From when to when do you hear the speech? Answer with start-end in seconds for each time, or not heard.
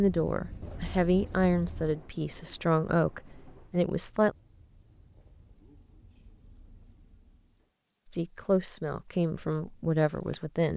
0.0-4.3, 8.1-10.7.